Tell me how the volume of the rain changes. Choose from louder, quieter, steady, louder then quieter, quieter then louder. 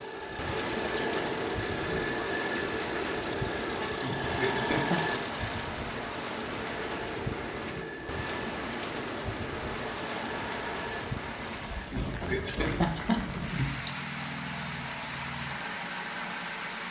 steady.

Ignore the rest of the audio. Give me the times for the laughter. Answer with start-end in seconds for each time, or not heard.
3.9-5.0, 11.8-13.7.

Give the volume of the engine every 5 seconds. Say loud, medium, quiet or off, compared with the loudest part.
loud, medium, medium, medium.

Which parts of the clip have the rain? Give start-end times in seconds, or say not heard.
0.0-16.8.